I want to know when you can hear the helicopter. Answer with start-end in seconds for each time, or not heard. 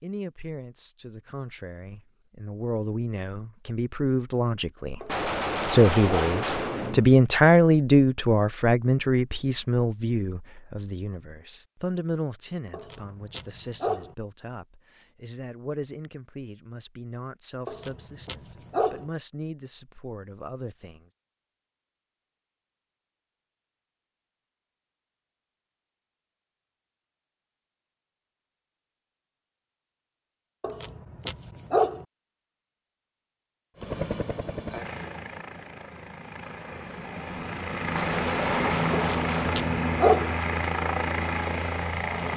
33.8-42.3.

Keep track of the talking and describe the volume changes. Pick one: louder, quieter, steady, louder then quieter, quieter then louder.
louder then quieter.